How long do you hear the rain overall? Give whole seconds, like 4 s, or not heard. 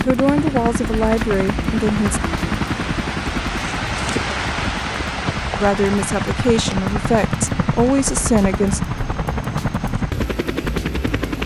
11 s.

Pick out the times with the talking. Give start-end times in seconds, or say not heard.
0.0-2.2, 5.6-8.8.